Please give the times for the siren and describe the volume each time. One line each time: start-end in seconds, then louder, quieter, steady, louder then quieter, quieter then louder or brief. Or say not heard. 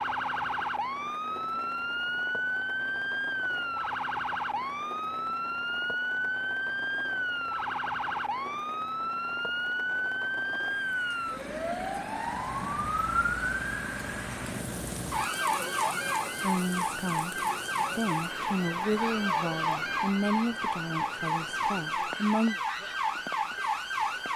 0.0-24.3 steady.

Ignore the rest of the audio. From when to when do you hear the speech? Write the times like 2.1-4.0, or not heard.
16.4-17.4, 17.9-22.6.